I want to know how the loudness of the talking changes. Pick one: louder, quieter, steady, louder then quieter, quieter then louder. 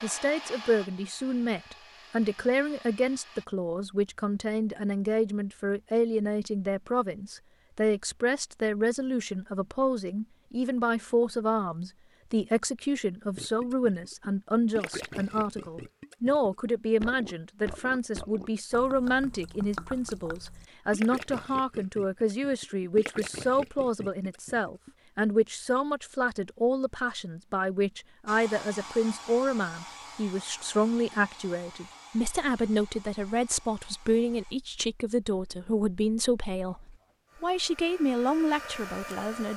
steady.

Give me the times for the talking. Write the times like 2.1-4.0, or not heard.
0.0-39.5.